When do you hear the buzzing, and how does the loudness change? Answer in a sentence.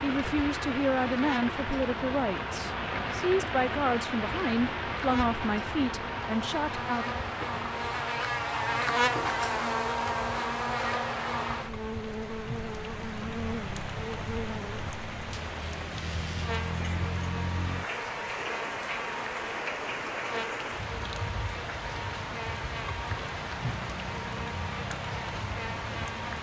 The buzzing can be heard from 0.0 to 26.3 s, getting louder then quieter.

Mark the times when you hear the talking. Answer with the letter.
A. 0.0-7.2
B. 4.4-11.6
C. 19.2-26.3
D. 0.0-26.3
A.